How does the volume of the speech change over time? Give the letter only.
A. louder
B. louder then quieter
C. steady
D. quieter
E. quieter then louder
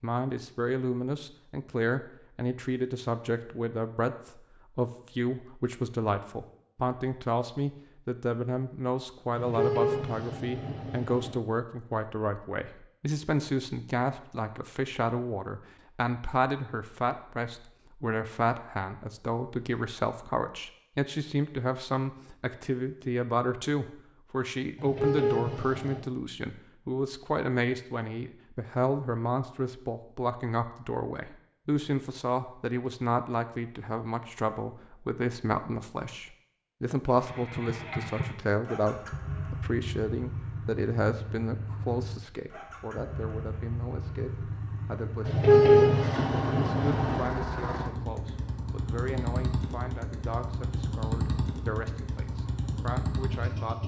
D.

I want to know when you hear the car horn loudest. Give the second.
46 s.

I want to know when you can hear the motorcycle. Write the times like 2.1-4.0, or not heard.
37.1-53.8.